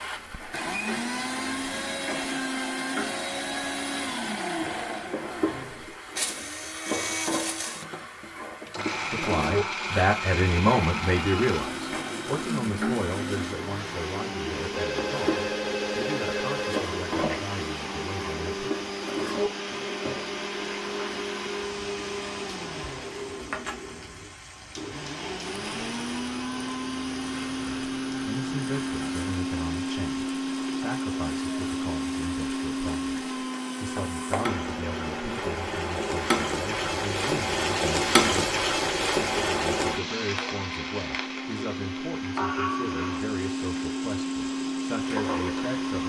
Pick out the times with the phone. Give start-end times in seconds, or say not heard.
14.8-17.4.